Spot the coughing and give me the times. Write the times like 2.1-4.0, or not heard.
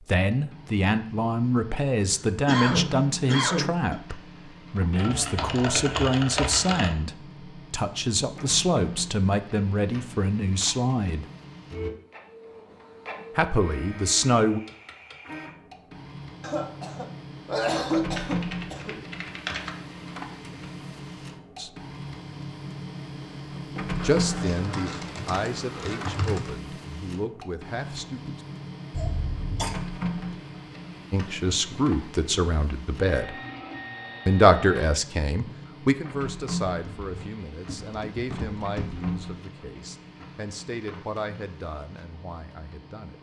2.5-4.0, 16.4-19.0, 28.9-29.8.